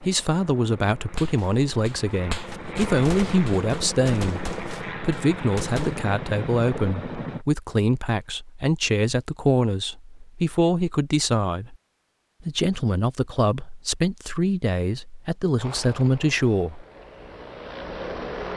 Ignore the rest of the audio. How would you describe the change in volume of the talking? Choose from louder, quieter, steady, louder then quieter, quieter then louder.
steady.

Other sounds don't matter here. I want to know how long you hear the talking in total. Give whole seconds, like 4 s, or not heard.
16 s.